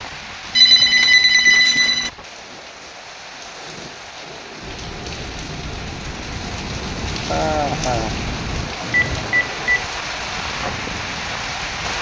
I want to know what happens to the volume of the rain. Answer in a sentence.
The volume of the rain goes up.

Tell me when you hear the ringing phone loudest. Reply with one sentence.
The loudest moment of the ringing phone is at 1 second.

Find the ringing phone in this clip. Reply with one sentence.
The ringing phone can be heard from 0.6 to 2.1 s and from 8.9 to 9.8 s.